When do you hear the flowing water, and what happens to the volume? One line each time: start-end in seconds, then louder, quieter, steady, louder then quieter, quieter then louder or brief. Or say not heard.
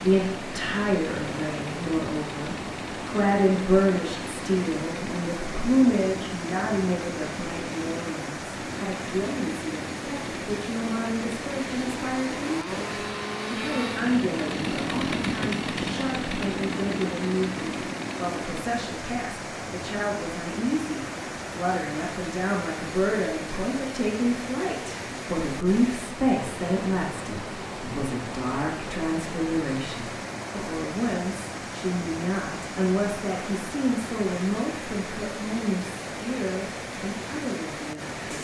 0.0-38.3 steady.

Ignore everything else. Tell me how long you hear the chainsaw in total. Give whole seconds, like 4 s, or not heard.
19 s.